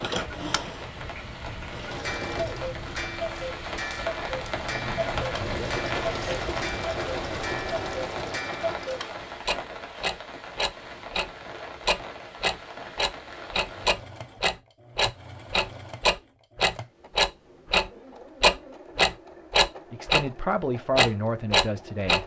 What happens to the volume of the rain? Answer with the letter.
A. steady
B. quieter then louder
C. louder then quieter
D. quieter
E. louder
C.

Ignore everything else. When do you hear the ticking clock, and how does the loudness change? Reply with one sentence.
You can hear the ticking clock from 0.1 to 20.2 s, getting louder; and briefly from 20.9 to 22.2 s.